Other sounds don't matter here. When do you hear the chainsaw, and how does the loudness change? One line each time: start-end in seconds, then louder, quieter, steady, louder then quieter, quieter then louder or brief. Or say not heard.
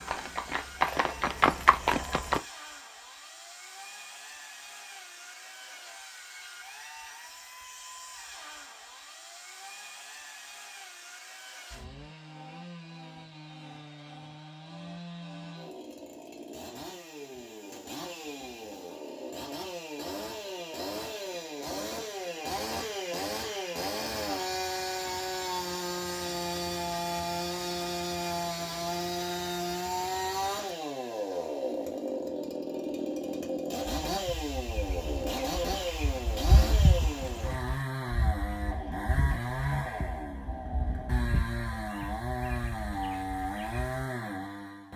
0.0-44.9 louder.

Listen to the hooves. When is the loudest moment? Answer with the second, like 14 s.
2 s.